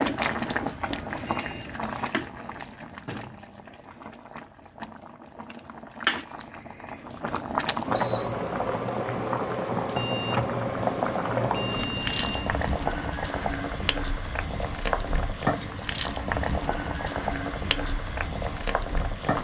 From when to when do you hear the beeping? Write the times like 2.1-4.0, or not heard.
1.2-2.9, 9.9-12.5.